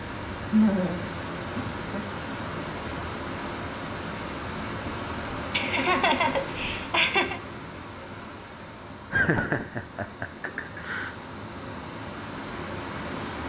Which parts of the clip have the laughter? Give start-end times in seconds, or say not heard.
0.5-2.0, 5.5-7.4, 9.1-11.1.